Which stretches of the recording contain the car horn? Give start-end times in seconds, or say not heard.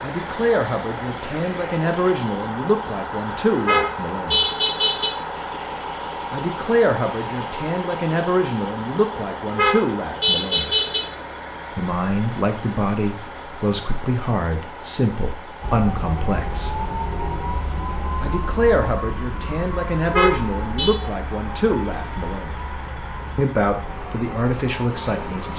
3.5-5.1, 9.4-11.0, 20.1-20.9.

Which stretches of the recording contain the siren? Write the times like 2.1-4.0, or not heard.
15.6-25.5.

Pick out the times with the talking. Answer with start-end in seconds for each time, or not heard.
0.0-4.5, 6.3-10.8, 11.8-16.8, 18.2-22.6, 23.4-25.5.